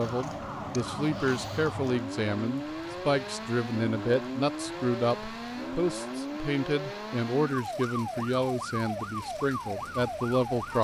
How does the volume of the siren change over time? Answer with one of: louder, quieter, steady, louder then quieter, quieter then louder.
steady.